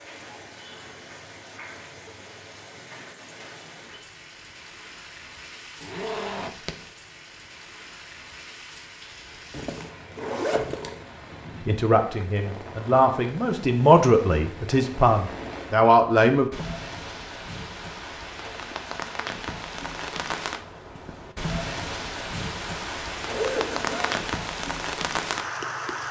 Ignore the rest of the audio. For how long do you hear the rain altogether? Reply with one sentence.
The rain can be heard for 26 seconds in total.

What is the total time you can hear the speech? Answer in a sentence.
The speech can be heard for 5 seconds in total.